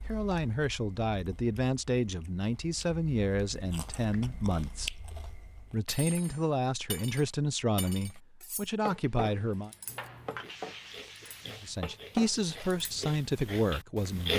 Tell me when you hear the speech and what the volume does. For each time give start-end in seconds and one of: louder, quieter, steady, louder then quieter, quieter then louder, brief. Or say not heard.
0.1-9.7 steady
11.6-14.3 brief.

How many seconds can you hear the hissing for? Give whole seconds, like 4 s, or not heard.
2 s.